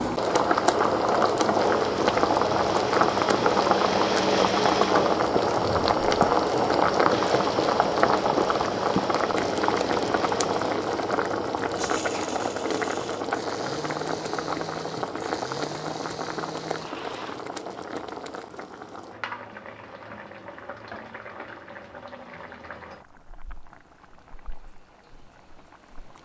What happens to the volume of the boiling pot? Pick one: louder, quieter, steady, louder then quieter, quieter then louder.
quieter.